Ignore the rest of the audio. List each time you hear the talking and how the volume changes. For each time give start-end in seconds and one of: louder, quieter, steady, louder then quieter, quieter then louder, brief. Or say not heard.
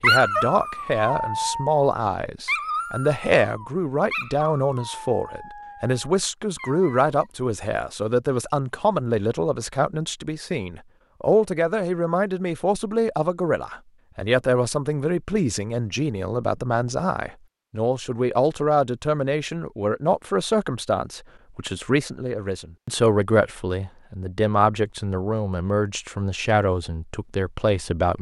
0.0-28.1 steady.